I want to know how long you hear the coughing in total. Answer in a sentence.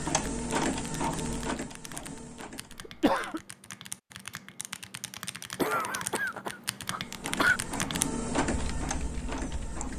The coughing can be heard for 3 seconds in total.